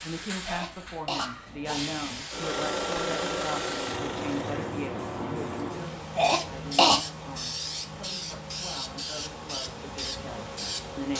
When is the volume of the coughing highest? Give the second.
7 s.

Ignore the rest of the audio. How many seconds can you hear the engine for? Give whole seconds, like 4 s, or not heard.
3 s.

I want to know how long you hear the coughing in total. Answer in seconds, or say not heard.
2 s.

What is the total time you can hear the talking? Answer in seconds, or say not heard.
11 s.